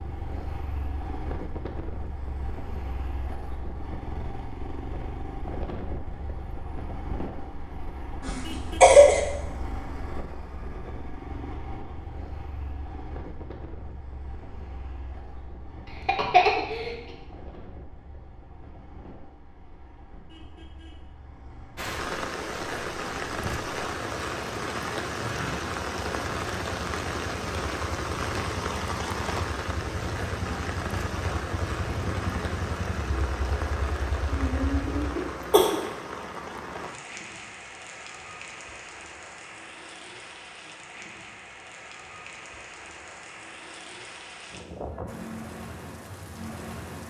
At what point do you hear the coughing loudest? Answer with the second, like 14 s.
9 s.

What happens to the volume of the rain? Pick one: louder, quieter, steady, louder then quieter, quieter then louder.
quieter.